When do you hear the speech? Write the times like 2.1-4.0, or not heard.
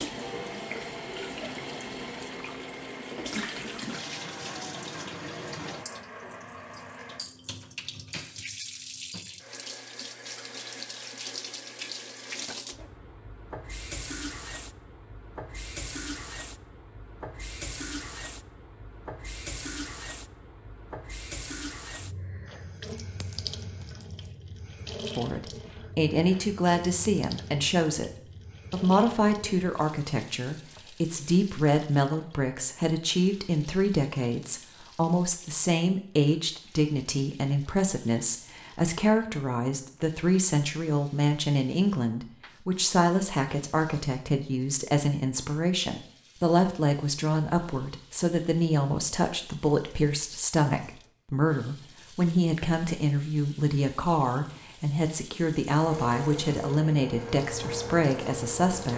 25.1-58.9.